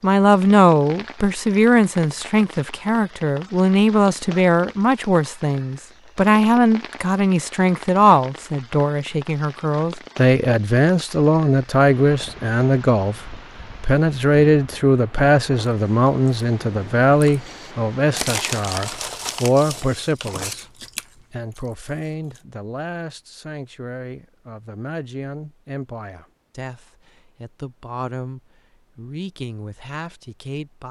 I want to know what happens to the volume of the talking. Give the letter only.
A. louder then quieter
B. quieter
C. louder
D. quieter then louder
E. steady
B.